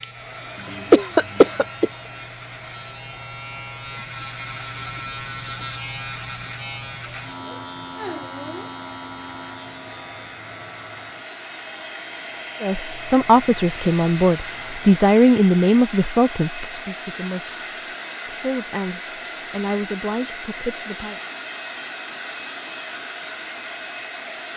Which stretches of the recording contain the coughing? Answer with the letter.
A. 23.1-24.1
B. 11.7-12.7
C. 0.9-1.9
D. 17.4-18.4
C.